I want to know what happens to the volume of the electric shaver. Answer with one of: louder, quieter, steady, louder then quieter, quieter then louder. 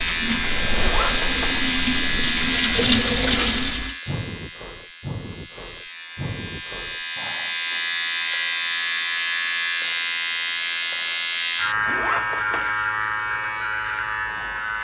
quieter then louder.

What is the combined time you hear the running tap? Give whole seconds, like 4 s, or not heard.
4 s.